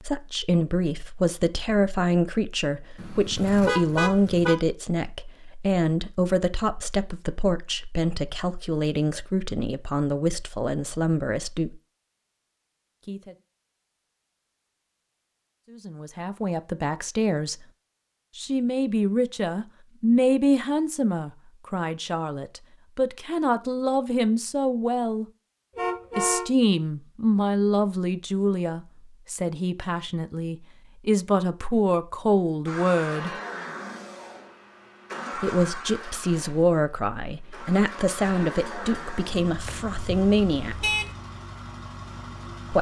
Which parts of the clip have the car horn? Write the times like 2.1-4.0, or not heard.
3.0-4.5, 25.8-26.4, 39.6-41.1.